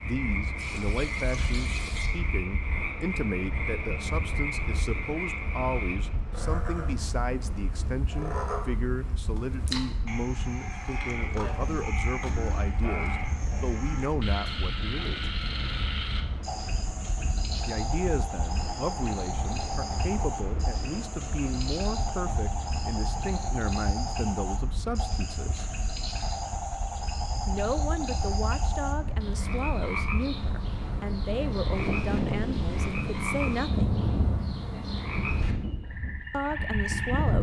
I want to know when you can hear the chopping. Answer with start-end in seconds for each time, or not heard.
not heard.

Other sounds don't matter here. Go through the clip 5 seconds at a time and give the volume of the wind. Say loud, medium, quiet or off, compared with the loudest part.
medium, medium, medium, medium, medium, medium, loud, loud.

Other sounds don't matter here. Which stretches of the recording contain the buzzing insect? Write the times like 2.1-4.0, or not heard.
not heard.